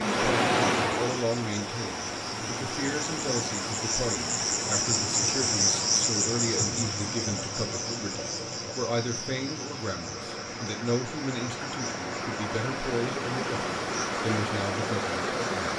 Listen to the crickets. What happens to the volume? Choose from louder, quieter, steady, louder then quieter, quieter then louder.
louder then quieter.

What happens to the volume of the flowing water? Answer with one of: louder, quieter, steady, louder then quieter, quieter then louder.
quieter then louder.